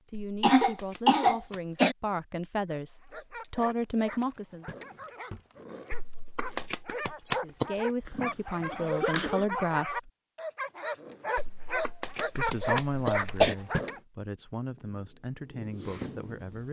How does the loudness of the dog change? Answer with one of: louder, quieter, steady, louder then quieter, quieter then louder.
louder.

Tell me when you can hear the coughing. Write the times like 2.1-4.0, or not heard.
0.4-1.9, 8.1-9.4, 12.3-13.6.